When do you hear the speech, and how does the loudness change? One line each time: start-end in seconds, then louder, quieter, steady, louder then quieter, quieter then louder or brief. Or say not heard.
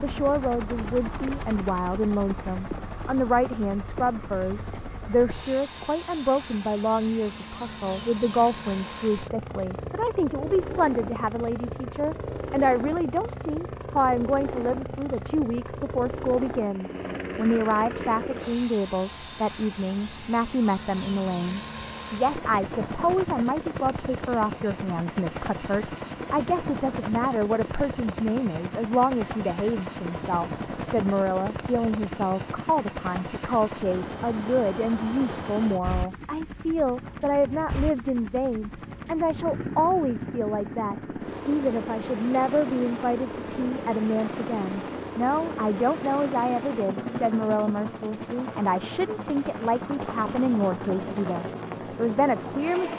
0.0-52.9 steady.